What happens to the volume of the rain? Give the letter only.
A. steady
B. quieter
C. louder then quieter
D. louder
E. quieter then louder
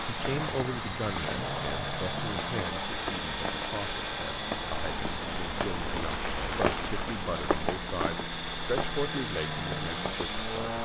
C.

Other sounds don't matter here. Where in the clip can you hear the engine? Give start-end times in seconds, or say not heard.
0.0-10.8.